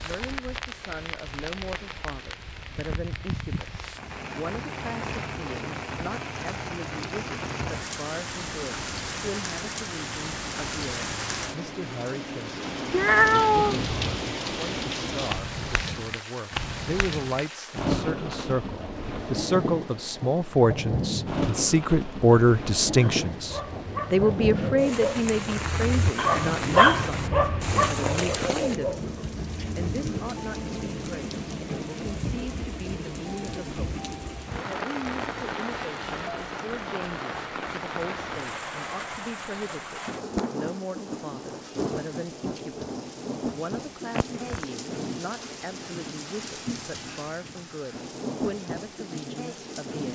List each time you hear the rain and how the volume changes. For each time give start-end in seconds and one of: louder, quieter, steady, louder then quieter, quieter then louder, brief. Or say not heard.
0.0-50.1 steady.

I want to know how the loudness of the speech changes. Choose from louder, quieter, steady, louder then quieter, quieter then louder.
louder then quieter.